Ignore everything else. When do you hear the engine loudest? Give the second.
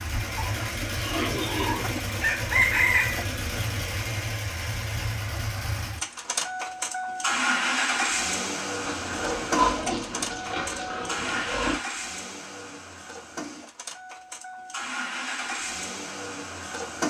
8 s.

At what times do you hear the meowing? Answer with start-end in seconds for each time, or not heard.
not heard.